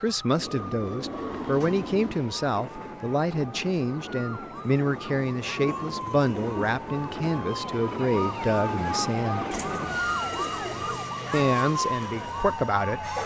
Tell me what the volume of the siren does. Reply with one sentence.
The loudness of the siren goes up.